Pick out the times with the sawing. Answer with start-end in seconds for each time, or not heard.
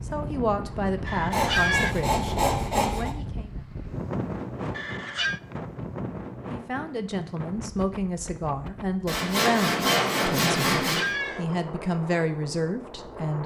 1.3-3.1, 9.1-11.1.